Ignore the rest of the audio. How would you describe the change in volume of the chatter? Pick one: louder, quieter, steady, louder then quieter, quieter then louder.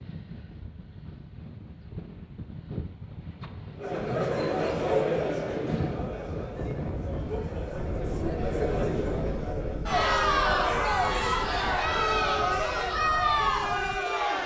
quieter then louder.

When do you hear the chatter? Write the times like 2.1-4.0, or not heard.
3.8-14.4.